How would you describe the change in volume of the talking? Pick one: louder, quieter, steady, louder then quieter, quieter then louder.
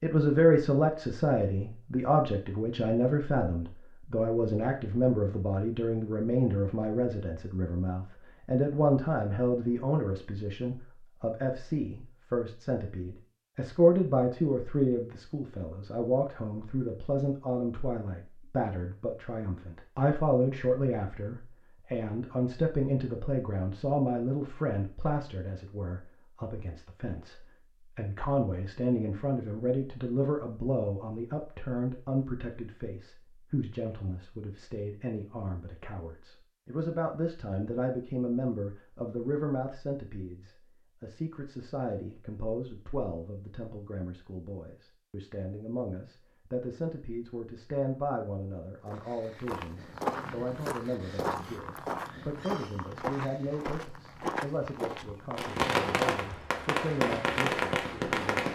quieter.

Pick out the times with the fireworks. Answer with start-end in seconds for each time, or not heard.
55.4-58.5.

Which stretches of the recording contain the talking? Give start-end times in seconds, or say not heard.
0.0-58.5.